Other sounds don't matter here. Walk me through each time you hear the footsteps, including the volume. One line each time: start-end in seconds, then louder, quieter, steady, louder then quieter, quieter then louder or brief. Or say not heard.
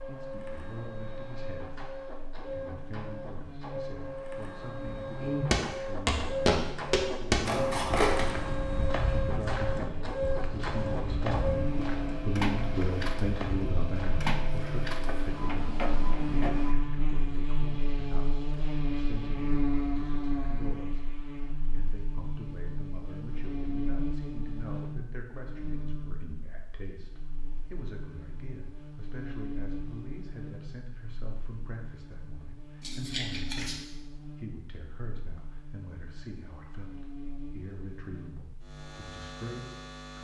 5.5-15.3 quieter.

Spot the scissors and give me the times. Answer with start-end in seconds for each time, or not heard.
7.5-8.2, 32.8-33.8.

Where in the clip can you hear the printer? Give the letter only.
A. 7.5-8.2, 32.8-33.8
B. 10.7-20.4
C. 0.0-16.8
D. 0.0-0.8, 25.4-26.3
C.